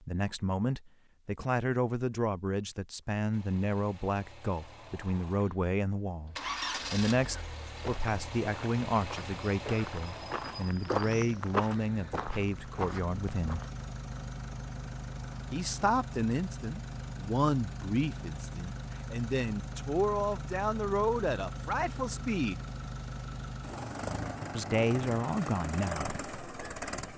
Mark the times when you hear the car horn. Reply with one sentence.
You can't hear the car horn here.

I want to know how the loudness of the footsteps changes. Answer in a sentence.
The loudness of the footsteps goes up, then down.